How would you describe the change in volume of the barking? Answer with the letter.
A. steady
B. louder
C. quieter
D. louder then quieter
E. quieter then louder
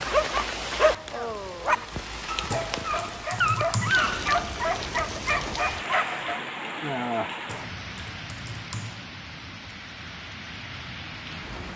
A.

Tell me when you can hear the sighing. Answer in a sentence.
The sighing can be heard from 1.1 to 1.9 s and from 6.8 to 7.5 s.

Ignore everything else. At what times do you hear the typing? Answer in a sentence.
The typing can be heard from 2.5 to 4.0 s and from 7.5 to 9.0 s.